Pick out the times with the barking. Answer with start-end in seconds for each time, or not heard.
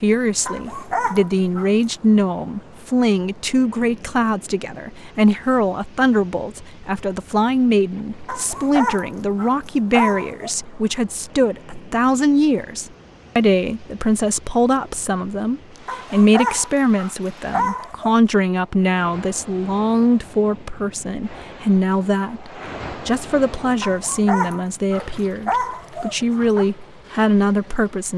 0.5-1.7, 8.2-10.5, 15.8-18.1, 23.8-26.6.